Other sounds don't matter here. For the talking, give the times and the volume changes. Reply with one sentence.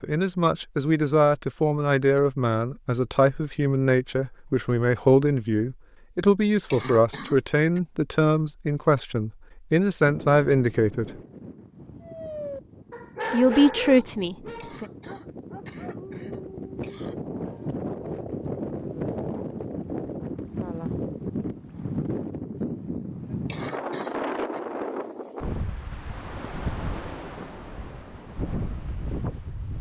The talking can be heard from 0.0 to 11.1 s, at a steady volume; and briefly from 13.3 to 14.8 s.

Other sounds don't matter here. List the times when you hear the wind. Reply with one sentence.
The wind can be heard from 10.0 to 29.7 s.